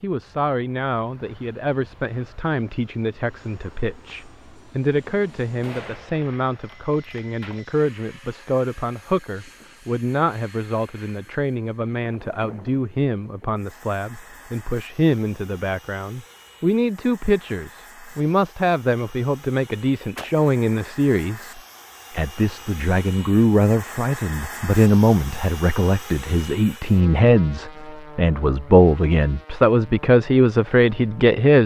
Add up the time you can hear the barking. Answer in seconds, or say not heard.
not heard.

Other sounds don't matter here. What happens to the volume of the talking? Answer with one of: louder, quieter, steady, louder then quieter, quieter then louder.
louder.